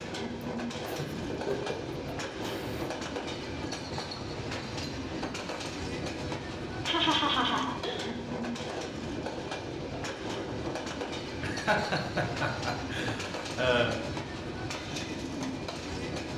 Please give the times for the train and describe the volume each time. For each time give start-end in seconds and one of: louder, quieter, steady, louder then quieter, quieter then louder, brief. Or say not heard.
0.0-16.3 steady.